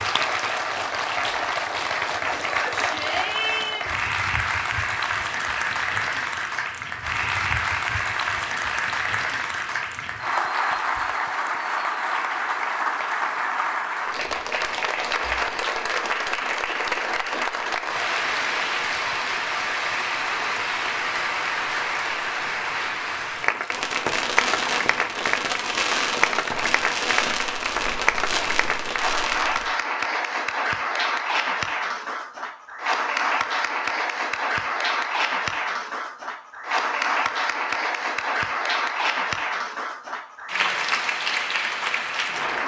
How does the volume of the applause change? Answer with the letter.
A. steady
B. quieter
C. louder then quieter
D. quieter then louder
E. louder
A.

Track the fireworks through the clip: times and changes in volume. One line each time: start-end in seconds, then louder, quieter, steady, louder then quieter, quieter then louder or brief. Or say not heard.
23.7-29.8 steady.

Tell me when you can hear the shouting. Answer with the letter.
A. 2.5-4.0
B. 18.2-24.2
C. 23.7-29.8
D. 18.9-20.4
A.